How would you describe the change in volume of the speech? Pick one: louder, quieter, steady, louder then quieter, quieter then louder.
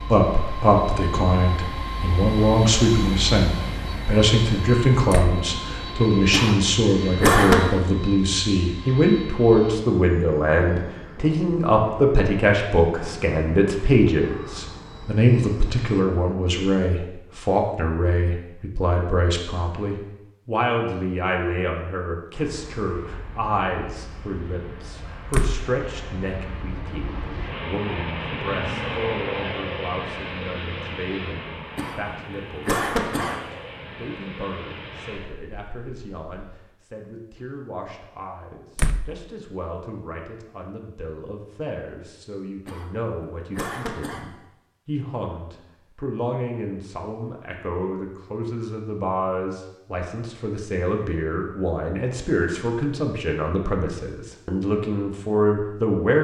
quieter then louder.